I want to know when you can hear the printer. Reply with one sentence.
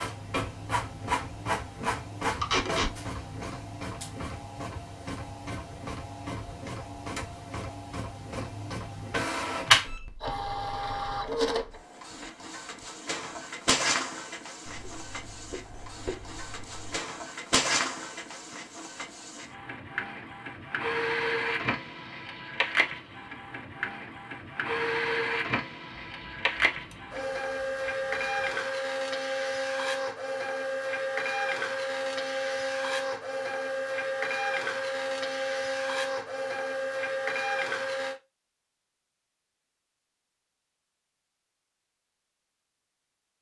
The printer can be heard from 0.0 to 38.1 s.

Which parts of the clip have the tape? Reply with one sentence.
The tape can be heard from 2.4 to 2.9 s.